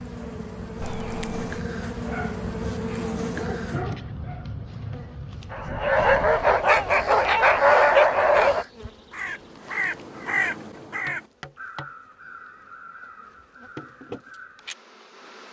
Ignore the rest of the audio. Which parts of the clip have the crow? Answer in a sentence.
The crow can be heard from 6.8 to 14.8 s.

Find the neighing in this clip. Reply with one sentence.
You can hear the neighing from 0.8 to 1.6 s.